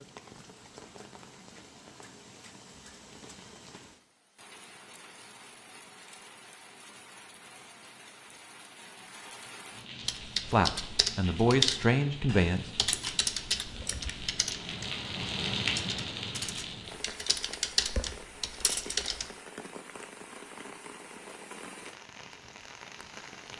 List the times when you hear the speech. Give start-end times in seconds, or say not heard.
10.5-12.9.